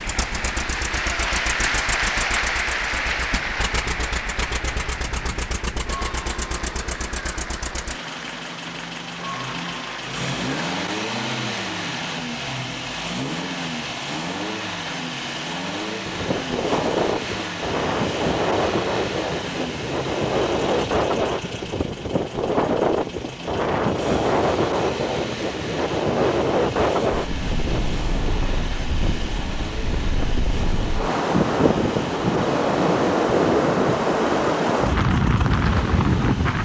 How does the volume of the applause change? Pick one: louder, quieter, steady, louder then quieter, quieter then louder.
quieter.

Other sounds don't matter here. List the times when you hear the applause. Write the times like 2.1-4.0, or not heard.
0.0-10.9.